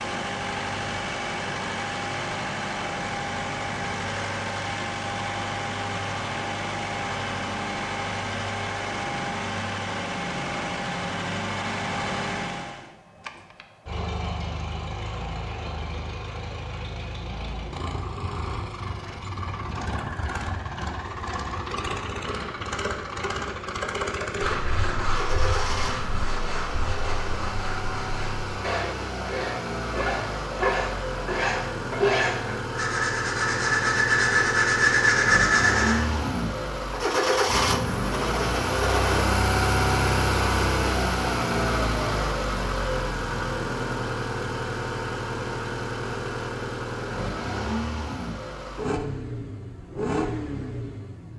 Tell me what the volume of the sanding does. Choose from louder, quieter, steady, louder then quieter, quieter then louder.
louder.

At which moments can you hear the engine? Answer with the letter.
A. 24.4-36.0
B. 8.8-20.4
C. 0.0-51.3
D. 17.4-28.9
C.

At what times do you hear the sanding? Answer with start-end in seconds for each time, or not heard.
24.4-36.0.